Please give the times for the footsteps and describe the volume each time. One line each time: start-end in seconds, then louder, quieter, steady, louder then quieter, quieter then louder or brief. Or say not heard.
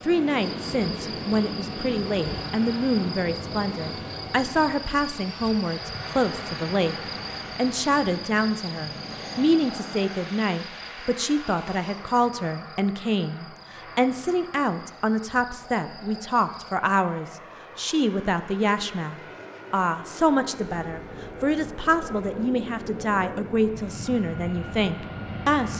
not heard.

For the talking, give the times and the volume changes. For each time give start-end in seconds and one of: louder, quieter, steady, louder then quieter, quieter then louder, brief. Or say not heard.
0.0-7.0 steady
7.5-25.7 steady.